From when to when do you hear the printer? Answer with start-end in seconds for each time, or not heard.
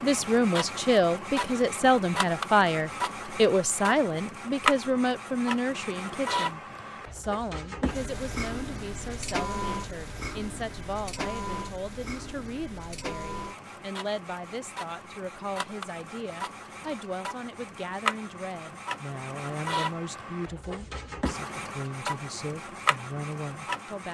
0.0-24.0.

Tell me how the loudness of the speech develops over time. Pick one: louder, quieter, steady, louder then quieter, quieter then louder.
quieter.